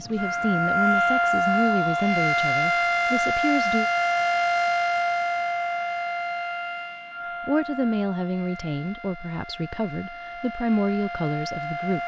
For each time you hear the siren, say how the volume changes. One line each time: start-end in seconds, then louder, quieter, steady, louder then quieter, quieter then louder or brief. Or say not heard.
0.0-12.0 quieter.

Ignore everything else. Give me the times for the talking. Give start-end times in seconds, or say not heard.
0.0-3.9, 7.5-12.0.